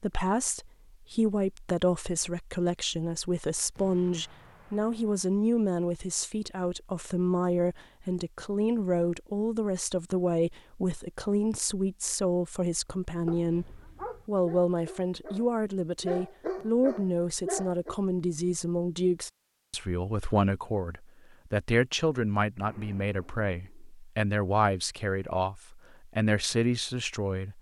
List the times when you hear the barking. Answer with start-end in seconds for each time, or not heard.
13.2-17.9.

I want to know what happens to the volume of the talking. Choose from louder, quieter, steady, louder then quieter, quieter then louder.
steady.